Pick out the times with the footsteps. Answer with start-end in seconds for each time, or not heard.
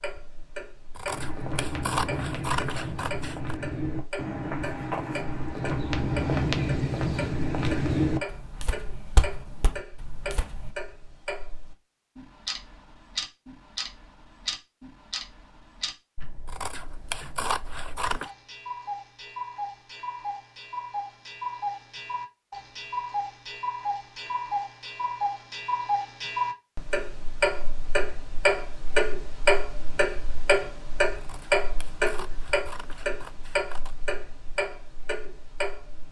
1.1-10.7.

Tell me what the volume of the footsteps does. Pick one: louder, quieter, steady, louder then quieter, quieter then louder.
louder then quieter.